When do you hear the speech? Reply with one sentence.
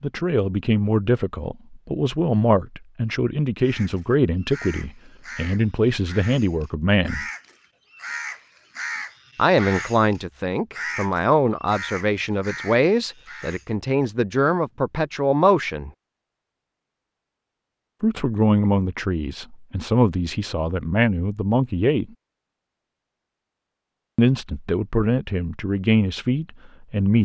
The speech can be heard from 0.0 to 7.2 s, from 9.3 to 15.9 s, from 18.0 to 22.1 s and from 24.1 to 27.1 s.